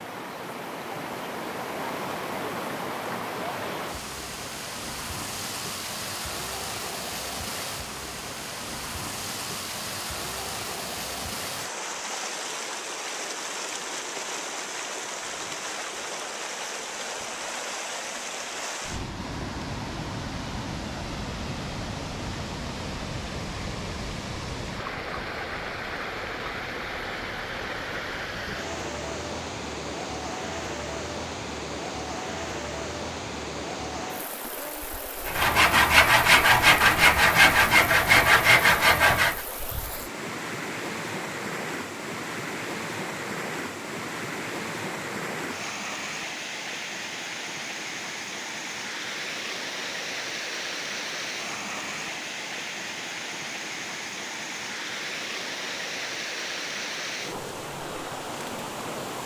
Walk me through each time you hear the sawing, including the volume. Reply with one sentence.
The sawing can be heard from 35.2 to 39.5 s, at a steady volume.